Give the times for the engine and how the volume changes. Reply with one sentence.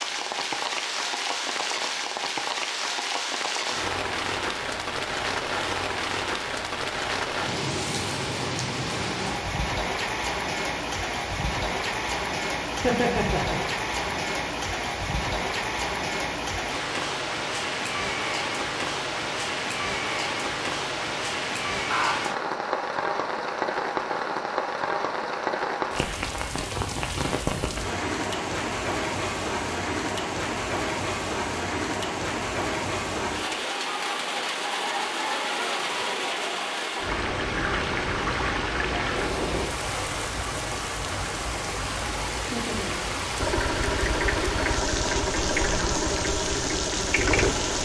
The engine can be heard from 43.4 to 47.8 s, at a steady volume.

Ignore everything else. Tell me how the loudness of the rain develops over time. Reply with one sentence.
The loudness of the rain stays about the same.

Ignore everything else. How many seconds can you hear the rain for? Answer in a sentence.
The rain can be heard for 48 seconds in total.